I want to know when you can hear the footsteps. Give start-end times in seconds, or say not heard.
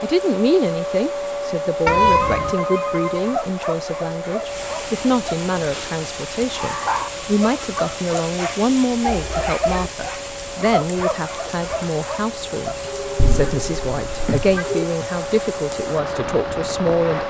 not heard.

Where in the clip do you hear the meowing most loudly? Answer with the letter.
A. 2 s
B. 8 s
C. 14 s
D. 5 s
A.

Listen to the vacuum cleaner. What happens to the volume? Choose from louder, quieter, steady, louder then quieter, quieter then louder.
quieter then louder.